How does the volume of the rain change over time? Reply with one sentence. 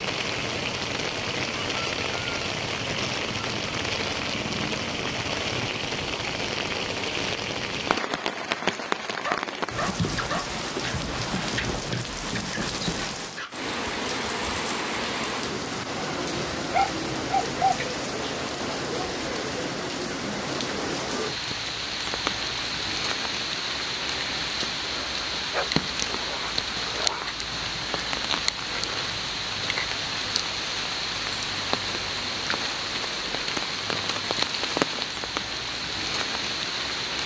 The volume of the rain stays about the same.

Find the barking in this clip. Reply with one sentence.
The barking can be heard from 9.2 to 10.5 s, from 16.6 to 17.9 s and from 25.5 to 27.4 s.